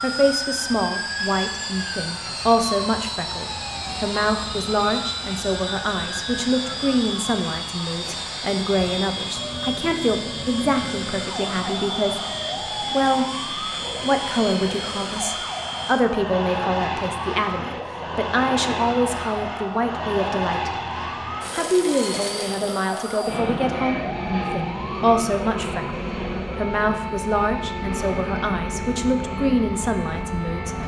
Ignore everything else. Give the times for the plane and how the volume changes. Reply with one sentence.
The plane can be heard from 0.0 to 30.8 s, at a steady volume.